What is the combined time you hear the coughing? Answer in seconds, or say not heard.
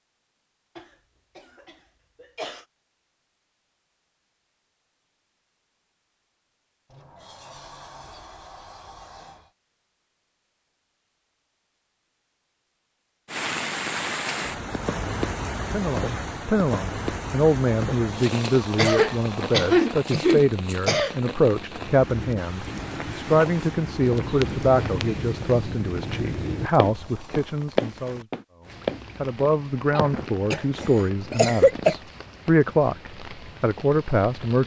6 s.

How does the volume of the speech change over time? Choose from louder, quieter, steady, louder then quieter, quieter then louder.
steady.